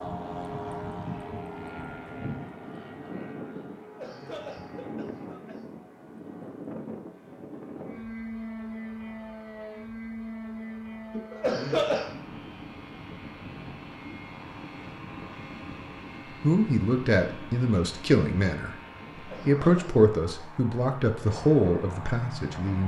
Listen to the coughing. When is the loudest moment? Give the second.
12 s.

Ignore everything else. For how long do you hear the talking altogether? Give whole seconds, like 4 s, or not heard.
6 s.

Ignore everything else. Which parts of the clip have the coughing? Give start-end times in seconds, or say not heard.
3.9-5.6, 11.1-12.1, 19.1-19.9.